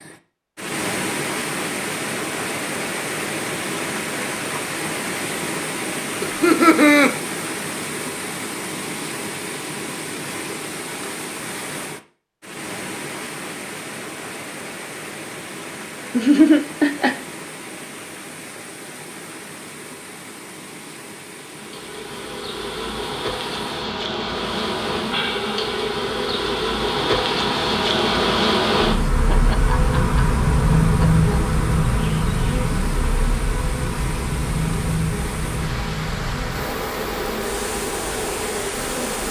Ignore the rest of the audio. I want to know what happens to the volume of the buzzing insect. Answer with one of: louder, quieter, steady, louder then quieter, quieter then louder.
louder then quieter.